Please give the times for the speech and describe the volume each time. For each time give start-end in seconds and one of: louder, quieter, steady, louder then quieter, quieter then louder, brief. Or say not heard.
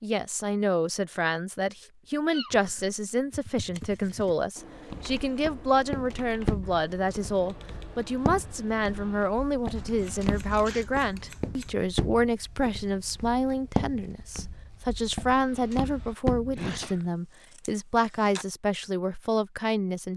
0.0-20.1 steady.